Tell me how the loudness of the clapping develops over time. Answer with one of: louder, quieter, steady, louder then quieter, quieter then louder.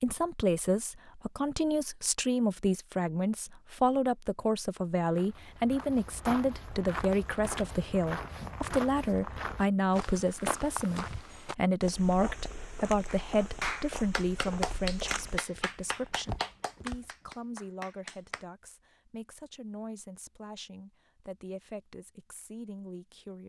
quieter.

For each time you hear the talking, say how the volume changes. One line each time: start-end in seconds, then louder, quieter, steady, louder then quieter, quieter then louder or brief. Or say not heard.
0.0-23.4 quieter.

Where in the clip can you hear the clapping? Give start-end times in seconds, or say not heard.
13.1-18.4.